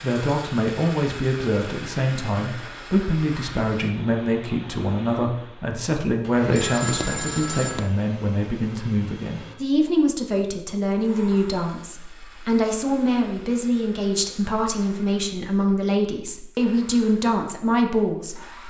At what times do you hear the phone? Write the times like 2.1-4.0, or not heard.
6.3-8.0.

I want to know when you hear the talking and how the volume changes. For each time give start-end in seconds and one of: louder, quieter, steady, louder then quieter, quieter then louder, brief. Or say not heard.
0.0-18.4 steady.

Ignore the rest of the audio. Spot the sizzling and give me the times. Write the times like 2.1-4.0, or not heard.
not heard.